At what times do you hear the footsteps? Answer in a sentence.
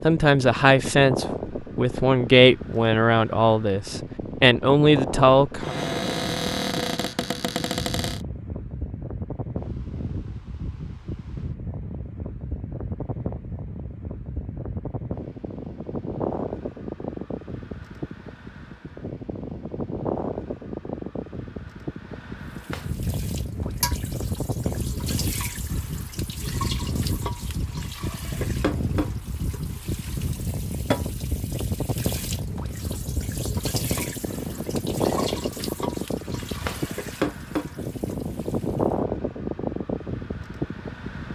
You can't hear the footsteps here.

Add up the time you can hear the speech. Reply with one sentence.
The speech can be heard for 6 seconds in total.